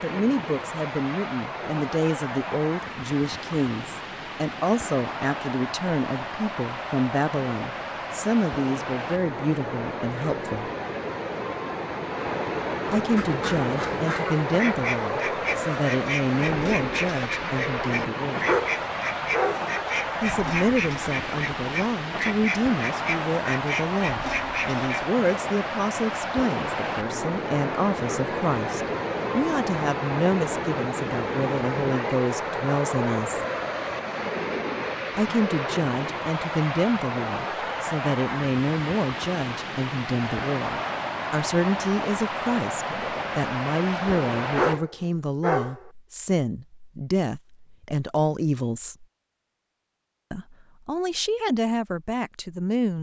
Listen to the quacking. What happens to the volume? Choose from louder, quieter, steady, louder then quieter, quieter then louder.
steady.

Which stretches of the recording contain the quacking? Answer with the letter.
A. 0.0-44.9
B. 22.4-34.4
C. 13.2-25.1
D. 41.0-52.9
C.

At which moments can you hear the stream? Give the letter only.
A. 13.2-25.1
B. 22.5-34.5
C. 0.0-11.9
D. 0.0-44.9
D.